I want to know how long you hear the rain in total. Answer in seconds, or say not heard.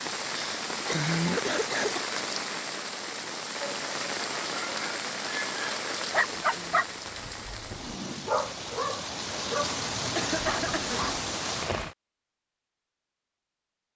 12 s.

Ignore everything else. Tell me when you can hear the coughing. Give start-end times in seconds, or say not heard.
0.3-2.0, 10.2-11.1.